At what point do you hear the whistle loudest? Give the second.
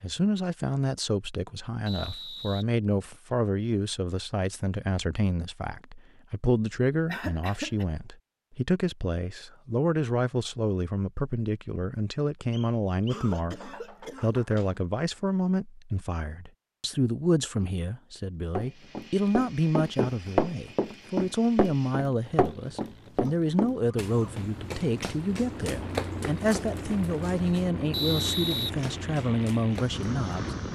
28 s.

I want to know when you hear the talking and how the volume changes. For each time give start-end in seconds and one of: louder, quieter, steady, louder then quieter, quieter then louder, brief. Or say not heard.
0.0-30.6 steady.